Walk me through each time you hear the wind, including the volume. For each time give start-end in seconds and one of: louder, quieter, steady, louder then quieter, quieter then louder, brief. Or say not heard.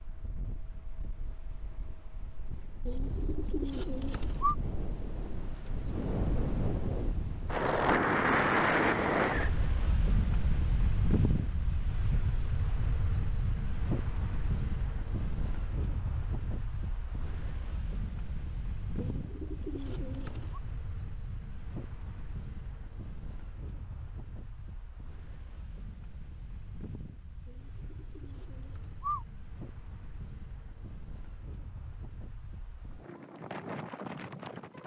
0.0-34.8 louder then quieter.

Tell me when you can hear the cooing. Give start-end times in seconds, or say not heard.
2.9-4.5, 18.9-20.6, 27.4-29.2.